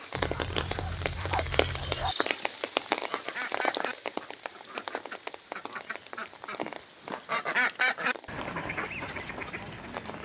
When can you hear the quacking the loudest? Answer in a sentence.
The volume of the quacking peaks at 8 seconds.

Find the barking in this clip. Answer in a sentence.
The barking can be heard from 0.1 to 2.1 s.